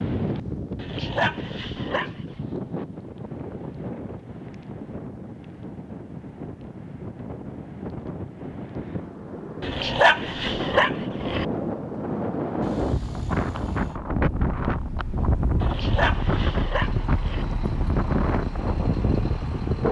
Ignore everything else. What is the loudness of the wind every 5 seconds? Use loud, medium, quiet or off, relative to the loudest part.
medium, medium, loud, loud.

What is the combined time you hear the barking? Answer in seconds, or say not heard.
5 s.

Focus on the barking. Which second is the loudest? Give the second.
10 s.